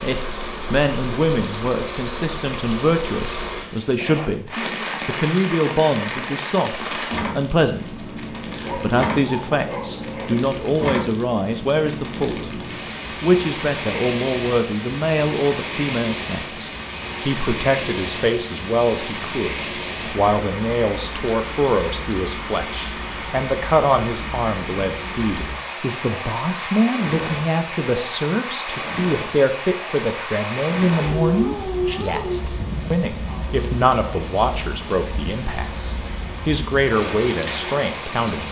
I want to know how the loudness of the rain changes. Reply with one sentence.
The loudness of the rain stays about the same.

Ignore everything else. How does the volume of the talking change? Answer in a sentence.
The volume of the talking stays about the same.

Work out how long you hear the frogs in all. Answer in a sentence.
You can't hear the frogs here.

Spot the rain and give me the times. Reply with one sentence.
The rain can be heard from 0.0 to 38.4 s.